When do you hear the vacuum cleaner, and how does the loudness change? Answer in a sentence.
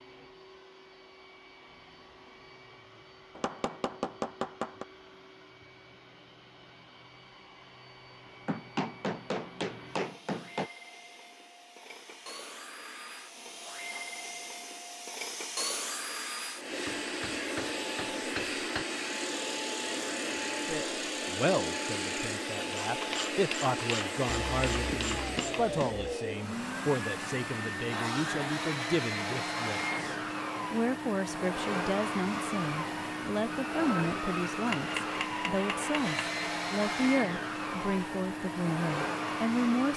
The vacuum cleaner can be heard from 0.0 to 39.9 s, getting louder.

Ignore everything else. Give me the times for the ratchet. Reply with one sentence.
The ratchet can be heard from 19.1 to 25.6 s.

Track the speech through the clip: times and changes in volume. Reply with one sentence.
The speech can be heard from 20.6 to 39.9 s, at a steady volume.